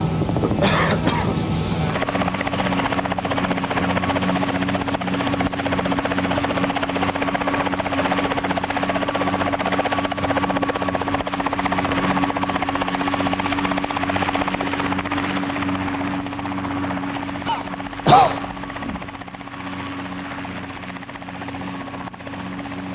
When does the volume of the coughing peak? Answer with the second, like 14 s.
18 s.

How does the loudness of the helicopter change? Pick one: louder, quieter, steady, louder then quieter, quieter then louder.
quieter.